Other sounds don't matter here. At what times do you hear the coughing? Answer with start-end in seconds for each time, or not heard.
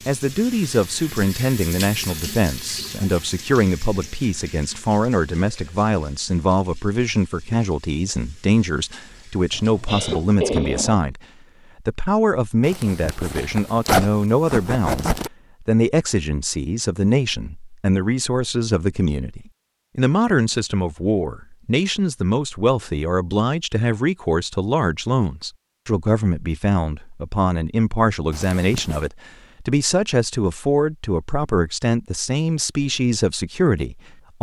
9.5-11.1.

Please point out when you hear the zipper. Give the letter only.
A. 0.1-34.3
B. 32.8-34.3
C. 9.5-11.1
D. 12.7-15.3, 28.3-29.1
D.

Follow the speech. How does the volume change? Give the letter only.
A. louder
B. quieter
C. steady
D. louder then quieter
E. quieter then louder
C.